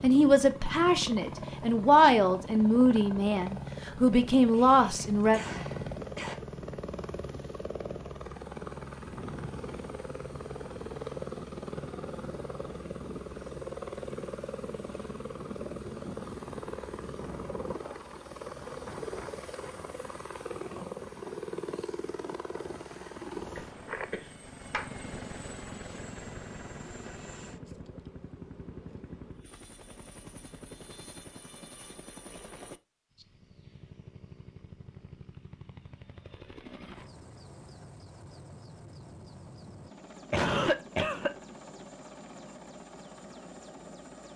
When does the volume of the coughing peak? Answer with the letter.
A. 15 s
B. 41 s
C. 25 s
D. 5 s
B.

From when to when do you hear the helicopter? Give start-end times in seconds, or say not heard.
0.0-44.3.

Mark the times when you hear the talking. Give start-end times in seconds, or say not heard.
0.0-5.4.